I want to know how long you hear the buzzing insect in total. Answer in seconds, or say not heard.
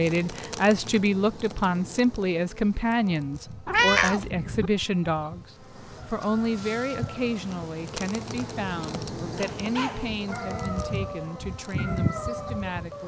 13 s.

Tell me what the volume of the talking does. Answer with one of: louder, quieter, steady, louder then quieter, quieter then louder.
quieter.